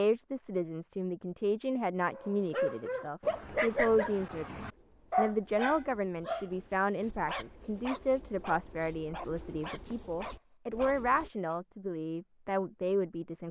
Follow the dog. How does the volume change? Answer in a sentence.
The loudness of the dog goes down.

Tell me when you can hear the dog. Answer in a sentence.
The dog can be heard from 2.1 to 11.6 s.